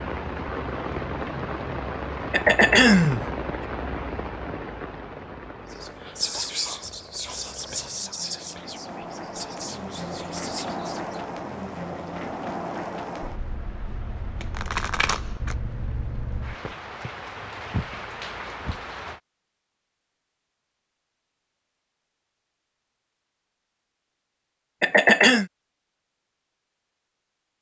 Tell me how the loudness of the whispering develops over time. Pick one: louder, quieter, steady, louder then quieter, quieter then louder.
quieter.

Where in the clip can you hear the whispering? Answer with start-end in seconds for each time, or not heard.
5.7-11.2.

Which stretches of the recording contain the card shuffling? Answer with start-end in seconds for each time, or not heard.
14.4-15.6.